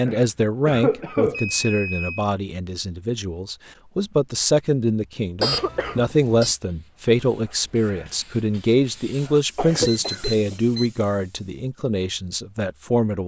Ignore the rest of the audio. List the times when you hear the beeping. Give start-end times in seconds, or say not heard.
1.3-2.2, 5.4-6.5, 9.8-10.9.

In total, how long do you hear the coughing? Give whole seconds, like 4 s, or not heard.
3 s.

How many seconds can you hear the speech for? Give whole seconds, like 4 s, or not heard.
13 s.